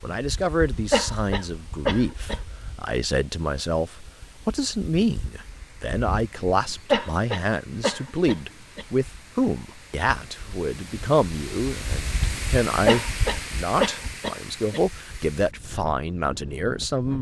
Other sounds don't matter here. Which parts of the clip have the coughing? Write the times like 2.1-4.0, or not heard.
0.9-2.4, 6.9-8.8, 12.8-14.8.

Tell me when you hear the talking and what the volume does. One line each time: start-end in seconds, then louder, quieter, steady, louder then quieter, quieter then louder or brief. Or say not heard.
0.0-17.1 steady.